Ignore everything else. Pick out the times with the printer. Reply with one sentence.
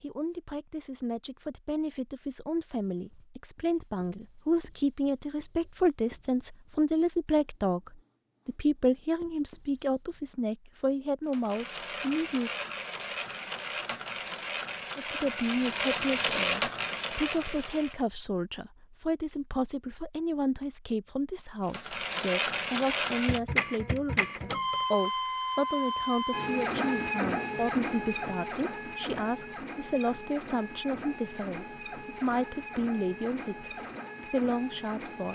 You can hear the printer from 11.3 to 18.1 s and from 21.6 to 35.3 s.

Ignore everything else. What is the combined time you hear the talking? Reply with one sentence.
You can hear the talking for 33 seconds altogether.